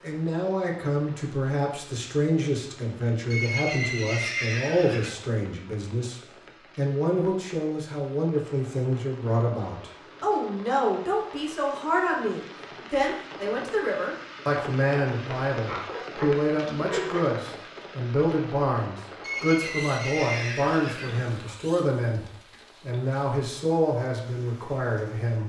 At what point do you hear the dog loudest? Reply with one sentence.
The loudest moment of the dog is at 17 seconds.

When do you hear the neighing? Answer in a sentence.
You can hear the neighing from 3.3 to 5.2 s and from 19.2 to 21.3 s.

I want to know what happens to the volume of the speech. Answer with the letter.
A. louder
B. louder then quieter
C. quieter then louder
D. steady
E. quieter
D.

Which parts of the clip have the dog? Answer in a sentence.
You can hear the dog from 15.7 to 17.2 s.